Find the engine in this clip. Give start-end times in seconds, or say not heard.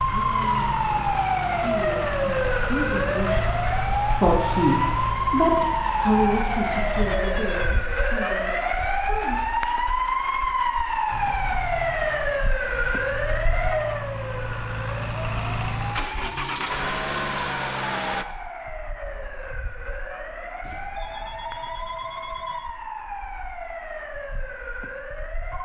0.0-7.2, 11.1-18.2.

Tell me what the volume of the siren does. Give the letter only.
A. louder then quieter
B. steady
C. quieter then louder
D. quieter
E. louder
D.